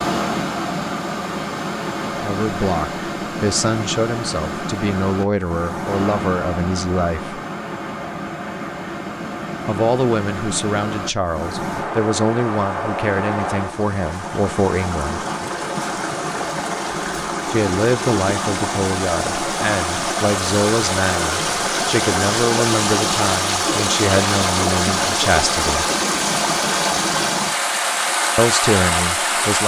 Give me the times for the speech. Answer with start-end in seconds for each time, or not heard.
2.0-7.4, 9.7-15.2, 17.5-25.9, 28.4-29.6.